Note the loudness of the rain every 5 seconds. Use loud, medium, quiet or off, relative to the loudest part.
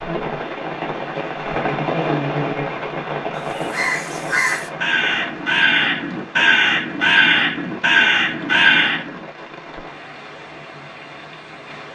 loud, medium, quiet.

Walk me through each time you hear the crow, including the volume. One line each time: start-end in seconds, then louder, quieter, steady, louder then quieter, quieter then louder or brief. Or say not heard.
3.4-9.2 louder.